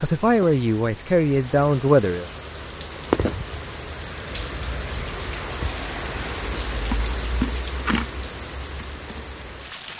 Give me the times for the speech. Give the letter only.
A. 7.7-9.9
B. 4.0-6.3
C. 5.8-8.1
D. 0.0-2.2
D.